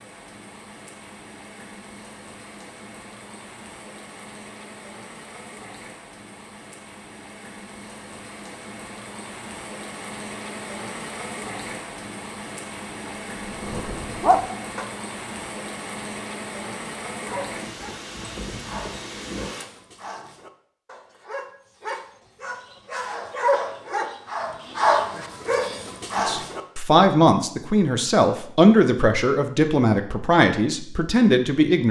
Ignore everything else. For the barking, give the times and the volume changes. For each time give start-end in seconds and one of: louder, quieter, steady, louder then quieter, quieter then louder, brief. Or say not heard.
13.1-14.8 brief
17.2-26.6 louder.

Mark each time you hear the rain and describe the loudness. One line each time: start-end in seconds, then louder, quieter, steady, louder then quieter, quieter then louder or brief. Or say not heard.
0.0-19.6 louder.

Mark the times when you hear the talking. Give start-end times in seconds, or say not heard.
26.1-31.8.